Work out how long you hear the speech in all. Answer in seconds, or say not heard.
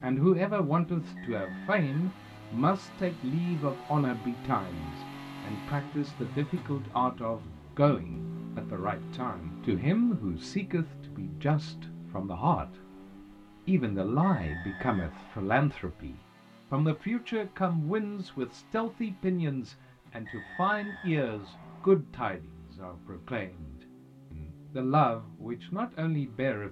26 s.